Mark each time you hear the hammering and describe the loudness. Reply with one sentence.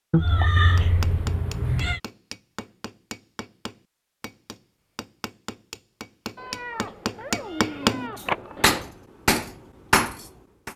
The hammering can be heard from 0.8 to 10.7 s, getting louder.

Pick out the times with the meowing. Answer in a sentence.
You can hear the meowing from 0.1 to 2.0 s and from 6.3 to 8.9 s.